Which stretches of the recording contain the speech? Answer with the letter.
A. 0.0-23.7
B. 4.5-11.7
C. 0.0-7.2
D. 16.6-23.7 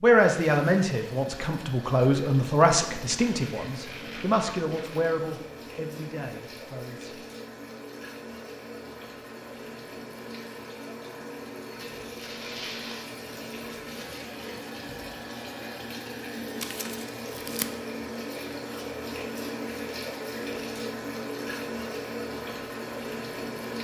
C.